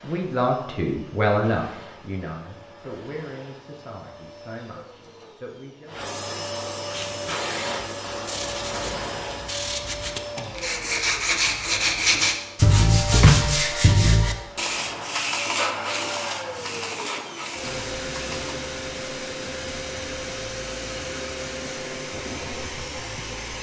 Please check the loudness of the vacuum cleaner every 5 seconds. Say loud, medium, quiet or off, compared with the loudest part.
quiet, loud, medium, loud, loud.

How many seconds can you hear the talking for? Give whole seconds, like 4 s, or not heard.
6 s.